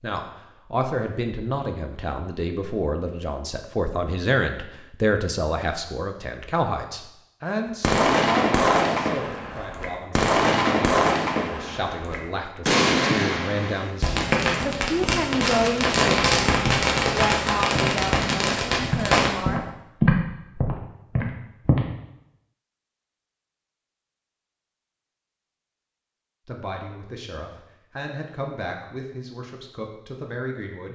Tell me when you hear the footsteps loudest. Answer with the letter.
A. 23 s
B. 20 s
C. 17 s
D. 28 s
B.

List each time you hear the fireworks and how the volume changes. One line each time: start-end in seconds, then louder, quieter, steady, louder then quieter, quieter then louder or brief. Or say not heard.
7.7-19.3 steady.